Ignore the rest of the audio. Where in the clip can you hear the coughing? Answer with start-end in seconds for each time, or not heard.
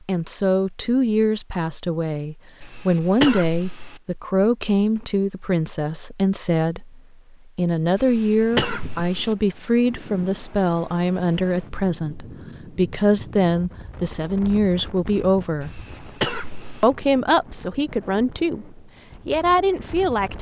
2.6-4.0, 8.0-9.3, 15.6-16.9.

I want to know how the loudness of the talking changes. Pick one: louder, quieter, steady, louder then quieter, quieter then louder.
steady.